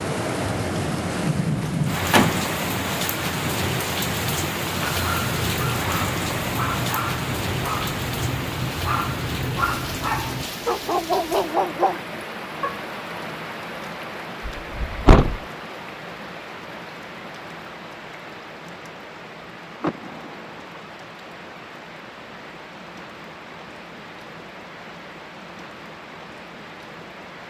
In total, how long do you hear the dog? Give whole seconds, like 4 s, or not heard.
8 s.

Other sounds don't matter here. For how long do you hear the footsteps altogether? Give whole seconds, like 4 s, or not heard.
not heard.